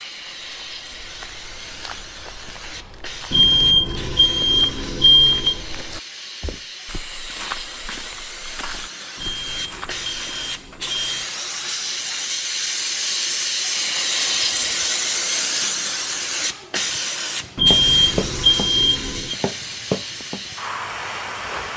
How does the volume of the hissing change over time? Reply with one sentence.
The loudness of the hissing goes up, then down.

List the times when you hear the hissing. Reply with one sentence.
You can hear the hissing from 0.0 to 21.7 s.